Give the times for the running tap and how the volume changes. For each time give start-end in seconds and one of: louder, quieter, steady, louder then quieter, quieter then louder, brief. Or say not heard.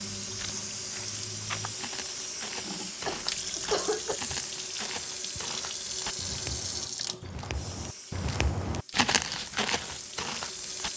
0.0-10.9 quieter.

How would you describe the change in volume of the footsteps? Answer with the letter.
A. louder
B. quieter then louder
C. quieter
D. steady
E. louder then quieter
A.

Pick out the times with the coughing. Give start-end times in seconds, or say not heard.
3.0-4.2.